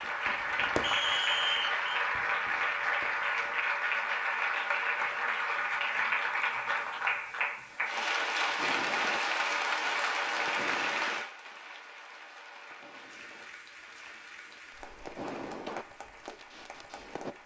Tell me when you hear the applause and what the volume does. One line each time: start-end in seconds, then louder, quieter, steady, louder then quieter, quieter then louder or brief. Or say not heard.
0.0-17.4 quieter.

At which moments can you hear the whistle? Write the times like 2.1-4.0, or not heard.
0.8-1.9.